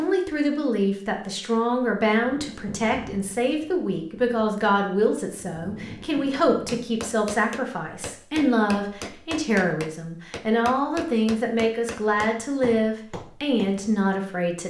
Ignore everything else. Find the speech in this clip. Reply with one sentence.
The speech can be heard from 0.0 to 14.6 s.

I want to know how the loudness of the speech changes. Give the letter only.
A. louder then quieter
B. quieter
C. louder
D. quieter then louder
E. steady
E.